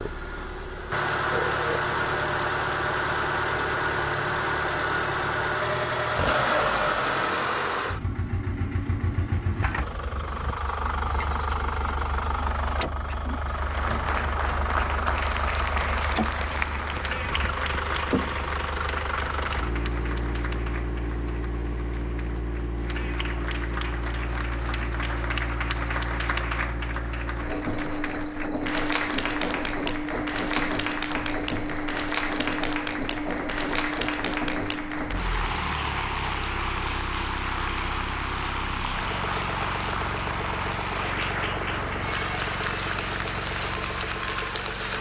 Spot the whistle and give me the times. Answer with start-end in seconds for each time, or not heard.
not heard.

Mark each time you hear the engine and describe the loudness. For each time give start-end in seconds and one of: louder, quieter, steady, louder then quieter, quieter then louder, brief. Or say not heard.
0.0-44.9 quieter.